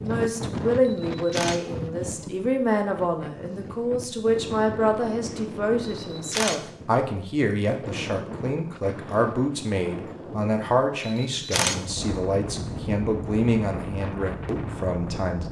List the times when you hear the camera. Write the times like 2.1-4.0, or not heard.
0.8-1.6, 6.0-6.6, 11.0-11.8.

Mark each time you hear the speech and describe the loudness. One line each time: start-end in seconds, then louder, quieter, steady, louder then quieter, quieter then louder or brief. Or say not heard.
0.0-15.4 steady.